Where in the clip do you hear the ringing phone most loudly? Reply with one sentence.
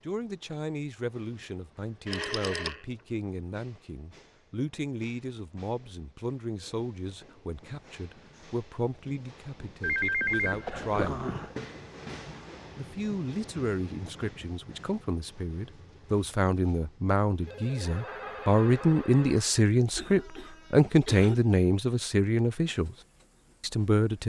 The loudest moment of the ringing phone is at 10 seconds.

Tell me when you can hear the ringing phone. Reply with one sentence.
You can hear the ringing phone from 2.0 to 2.8 s, from 9.8 to 11.6 s and from 17.4 to 19.5 s.